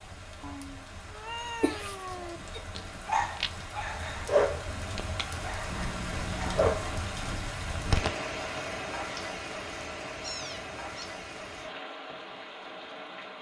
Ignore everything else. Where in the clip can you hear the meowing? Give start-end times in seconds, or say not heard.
0.4-2.4, 5.7-6.7, 10.2-11.1.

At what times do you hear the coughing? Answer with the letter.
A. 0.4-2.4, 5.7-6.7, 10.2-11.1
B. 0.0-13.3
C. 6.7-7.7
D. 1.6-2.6
D.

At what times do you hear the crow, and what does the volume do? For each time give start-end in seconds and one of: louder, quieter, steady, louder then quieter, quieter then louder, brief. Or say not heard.
not heard.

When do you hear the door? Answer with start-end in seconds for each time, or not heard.
not heard.